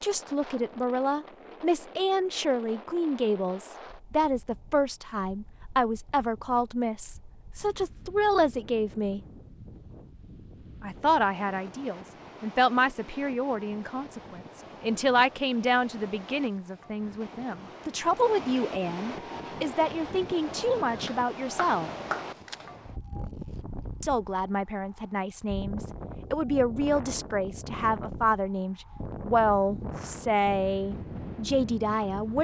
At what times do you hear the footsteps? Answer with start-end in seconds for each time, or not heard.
not heard.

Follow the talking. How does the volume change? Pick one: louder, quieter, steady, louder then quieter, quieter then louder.
steady.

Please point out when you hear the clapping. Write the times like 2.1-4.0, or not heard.
21.1-22.6.